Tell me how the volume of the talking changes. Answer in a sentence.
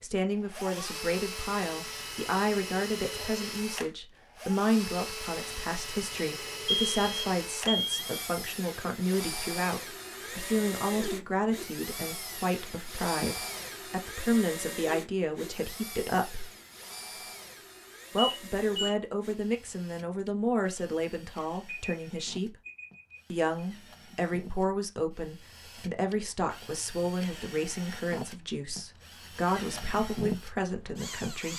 The loudness of the talking stays about the same.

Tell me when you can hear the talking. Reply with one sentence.
You can hear the talking from 0.0 to 16.5 s, from 18.1 to 22.6 s and from 23.3 to 31.5 s.